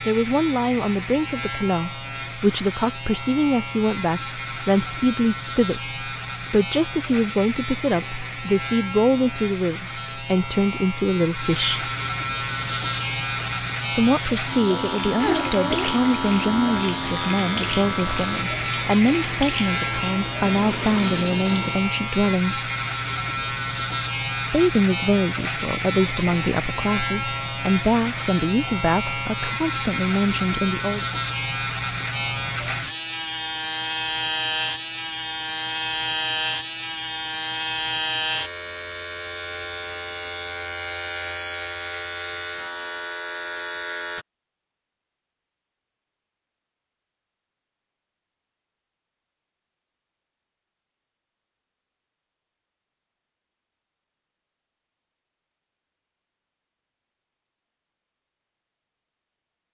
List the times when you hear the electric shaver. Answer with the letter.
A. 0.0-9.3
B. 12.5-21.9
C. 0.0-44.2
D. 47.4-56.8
C.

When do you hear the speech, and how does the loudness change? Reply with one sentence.
The speech can be heard from 0.1 to 11.9 s, at a steady volume; from 13.9 to 22.7 s, at a steady volume; and from 24.5 to 31.1 s, at a steady volume.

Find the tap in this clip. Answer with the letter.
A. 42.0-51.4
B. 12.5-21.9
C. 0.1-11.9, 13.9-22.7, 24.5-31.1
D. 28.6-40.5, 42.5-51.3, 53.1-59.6
B.